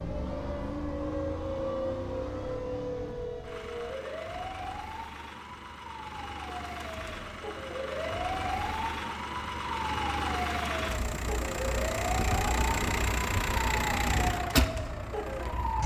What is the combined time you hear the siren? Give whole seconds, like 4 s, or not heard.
16 s.